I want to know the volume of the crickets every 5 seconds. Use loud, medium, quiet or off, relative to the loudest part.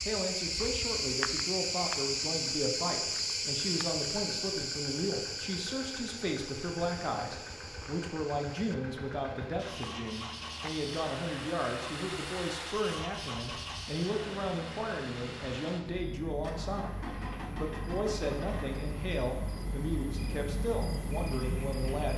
loud, medium, quiet, medium, medium.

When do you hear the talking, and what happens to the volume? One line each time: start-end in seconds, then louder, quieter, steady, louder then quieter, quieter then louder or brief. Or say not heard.
0.1-22.1 steady.